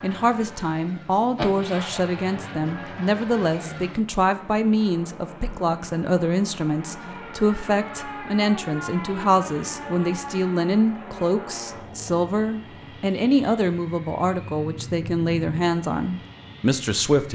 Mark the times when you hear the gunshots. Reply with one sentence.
You can hear the gunshots from 1.4 to 2.5 s.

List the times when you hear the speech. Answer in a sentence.
You can hear the speech from 0.0 to 17.3 s.